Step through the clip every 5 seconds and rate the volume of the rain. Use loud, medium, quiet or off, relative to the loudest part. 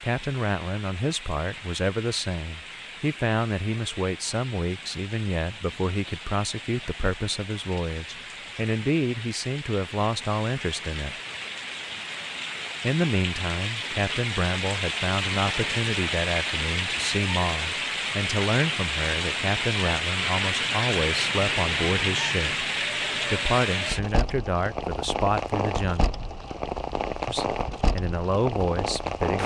quiet, quiet, medium, loud, loud, loud.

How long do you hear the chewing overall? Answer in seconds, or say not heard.
not heard.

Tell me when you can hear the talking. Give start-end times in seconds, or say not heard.
0.0-11.2, 12.8-22.6, 23.3-26.2, 27.2-29.4.